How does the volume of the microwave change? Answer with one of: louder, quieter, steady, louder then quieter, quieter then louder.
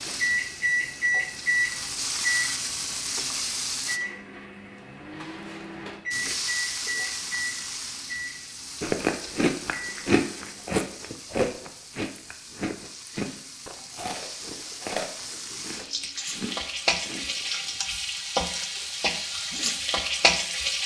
quieter.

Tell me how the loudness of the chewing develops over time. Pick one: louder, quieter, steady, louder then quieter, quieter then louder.
quieter.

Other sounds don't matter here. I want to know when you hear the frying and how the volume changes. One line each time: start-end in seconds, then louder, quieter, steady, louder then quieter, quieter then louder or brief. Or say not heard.
0.0-4.0 louder
6.1-20.8 quieter then louder.